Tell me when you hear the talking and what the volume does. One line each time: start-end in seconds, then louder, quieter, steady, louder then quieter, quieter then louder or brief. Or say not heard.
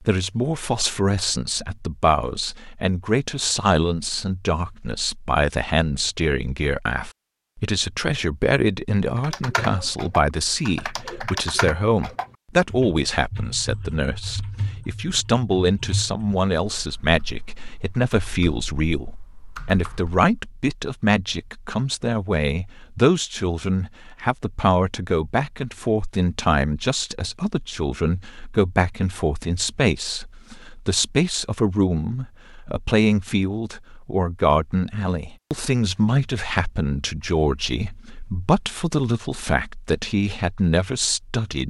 0.0-41.6 steady.